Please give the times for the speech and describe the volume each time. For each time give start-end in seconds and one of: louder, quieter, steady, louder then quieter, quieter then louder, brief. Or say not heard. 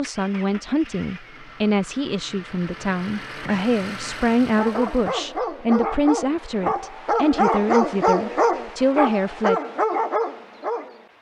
0.0-9.6 steady.